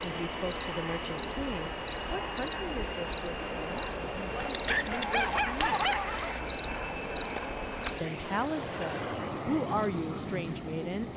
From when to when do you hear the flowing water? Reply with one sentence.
You can't hear the flowing water here.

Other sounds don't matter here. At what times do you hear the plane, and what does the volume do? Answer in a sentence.
The plane can be heard from 0.0 to 11.1 s, at a steady volume.